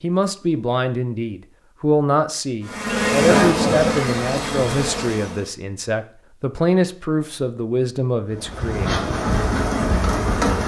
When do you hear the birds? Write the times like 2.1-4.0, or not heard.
not heard.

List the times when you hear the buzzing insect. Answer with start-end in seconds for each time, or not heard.
2.6-5.5, 8.3-10.6.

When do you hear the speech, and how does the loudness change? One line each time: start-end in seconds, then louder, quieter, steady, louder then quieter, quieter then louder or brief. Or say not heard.
0.0-9.0 steady.